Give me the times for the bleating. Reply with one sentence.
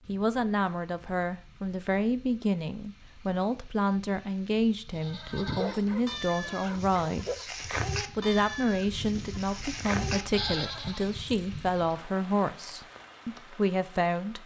The bleating can be heard from 4.8 to 11.8 s.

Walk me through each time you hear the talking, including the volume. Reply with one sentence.
You can hear the talking from 0.1 to 7.5 s, at a steady volume; and from 8.2 to 14.4 s, at a steady volume.